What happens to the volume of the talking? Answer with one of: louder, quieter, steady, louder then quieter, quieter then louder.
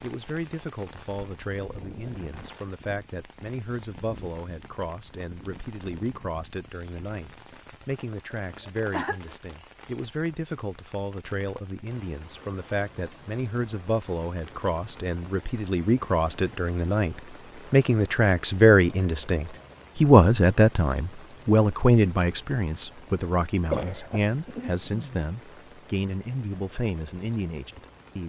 louder then quieter.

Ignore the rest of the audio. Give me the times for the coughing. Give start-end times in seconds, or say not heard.
8.3-9.3, 23.7-25.2.